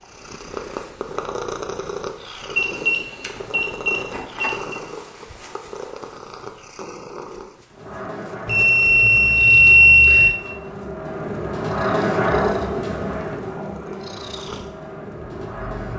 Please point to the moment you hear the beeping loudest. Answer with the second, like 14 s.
10 s.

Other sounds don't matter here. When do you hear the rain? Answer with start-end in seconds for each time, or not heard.
7.7-15.9.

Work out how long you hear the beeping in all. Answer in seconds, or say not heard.
4 s.